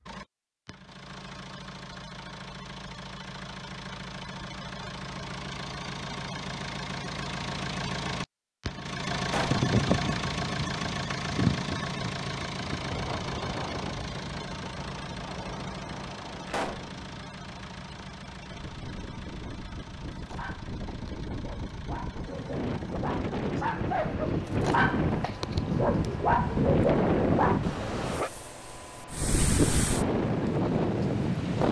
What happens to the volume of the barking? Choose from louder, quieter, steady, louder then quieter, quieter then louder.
louder.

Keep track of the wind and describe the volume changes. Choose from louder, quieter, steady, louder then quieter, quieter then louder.
quieter then louder.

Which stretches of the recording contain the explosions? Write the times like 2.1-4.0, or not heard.
9.2-9.7, 16.4-16.9.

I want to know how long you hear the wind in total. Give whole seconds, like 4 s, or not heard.
22 s.